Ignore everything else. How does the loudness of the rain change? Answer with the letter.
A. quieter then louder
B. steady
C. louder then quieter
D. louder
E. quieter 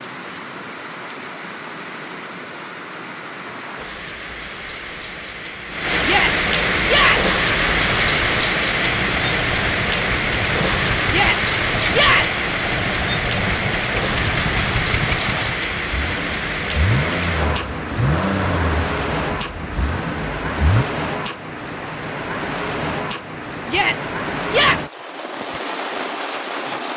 C.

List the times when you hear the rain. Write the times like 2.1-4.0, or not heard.
0.0-26.9.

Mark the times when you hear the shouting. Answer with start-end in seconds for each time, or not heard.
6.0-7.3, 11.1-12.4, 23.6-24.8.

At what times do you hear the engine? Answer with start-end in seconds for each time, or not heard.
6.8-20.9.